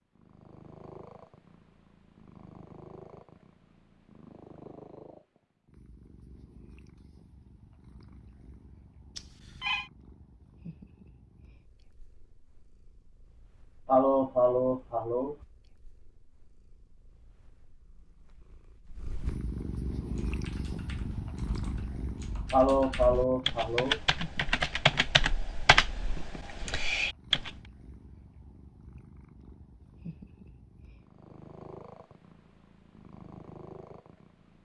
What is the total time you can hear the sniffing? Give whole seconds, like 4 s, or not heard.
3 s.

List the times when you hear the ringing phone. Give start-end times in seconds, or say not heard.
9.2-9.9.